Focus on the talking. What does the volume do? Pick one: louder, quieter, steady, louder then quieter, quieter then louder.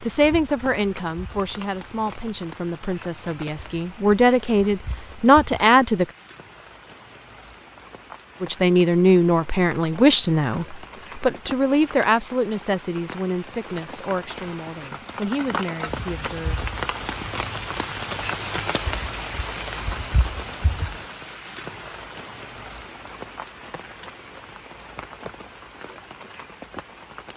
louder then quieter.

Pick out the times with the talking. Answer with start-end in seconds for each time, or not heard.
0.0-6.0, 8.4-16.6.